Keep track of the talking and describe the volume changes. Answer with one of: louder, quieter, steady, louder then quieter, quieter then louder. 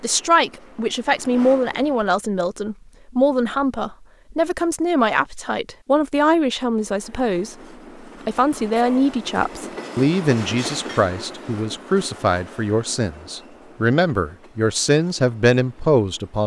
steady.